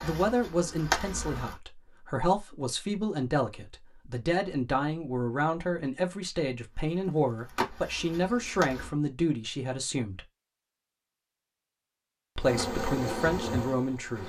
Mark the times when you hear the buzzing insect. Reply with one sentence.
You can hear the buzzing insect from 0.0 to 1.6 s, from 6.7 to 8.9 s and from 12.4 to 14.2 s.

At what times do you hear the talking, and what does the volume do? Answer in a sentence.
You can hear the talking from 0.0 to 10.2 s, at a steady volume; and briefly from 12.3 to 14.2 s.